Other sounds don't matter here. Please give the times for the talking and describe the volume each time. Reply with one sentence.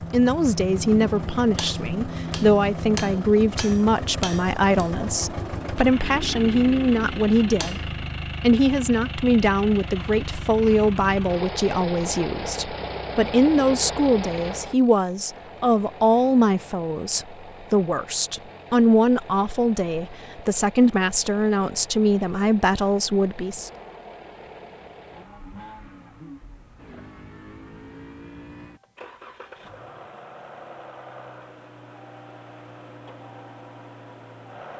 You can hear the talking from 0.1 to 7.8 s, at a steady volume; and from 8.4 to 23.7 s, at a steady volume.